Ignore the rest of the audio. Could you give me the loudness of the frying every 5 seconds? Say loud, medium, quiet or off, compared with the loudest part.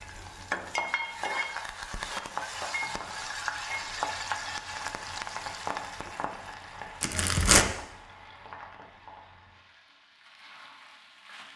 loud, medium, quiet.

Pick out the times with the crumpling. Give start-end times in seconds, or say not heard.
7.0-7.7.